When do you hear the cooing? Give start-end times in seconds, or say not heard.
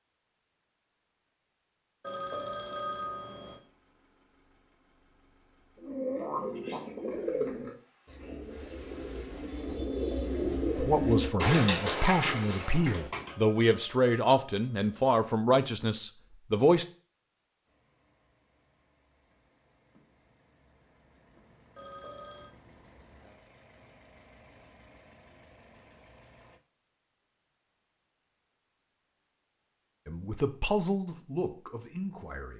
5.8-13.3.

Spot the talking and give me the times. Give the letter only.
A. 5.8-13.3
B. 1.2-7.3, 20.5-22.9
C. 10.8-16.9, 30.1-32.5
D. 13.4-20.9
C.